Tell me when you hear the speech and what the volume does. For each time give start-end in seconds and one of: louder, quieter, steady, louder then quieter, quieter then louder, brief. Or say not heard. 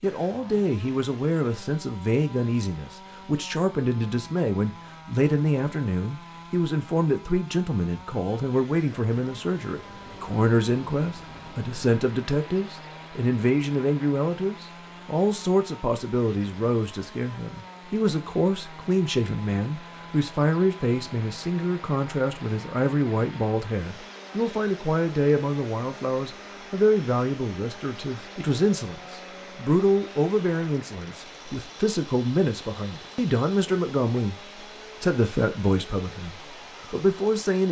0.0-34.4 steady
35.0-37.6 brief.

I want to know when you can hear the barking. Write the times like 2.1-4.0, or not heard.
not heard.